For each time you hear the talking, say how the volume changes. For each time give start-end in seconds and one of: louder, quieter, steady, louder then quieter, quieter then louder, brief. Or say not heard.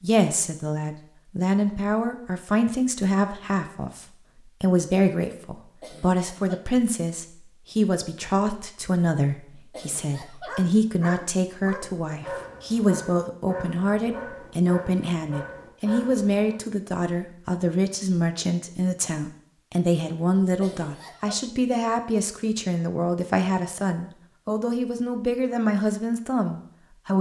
0.0-27.1 steady.